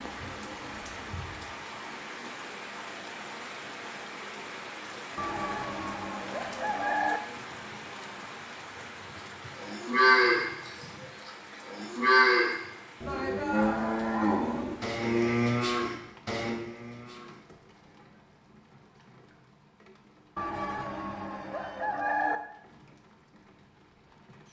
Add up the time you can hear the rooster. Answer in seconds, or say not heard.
4 s.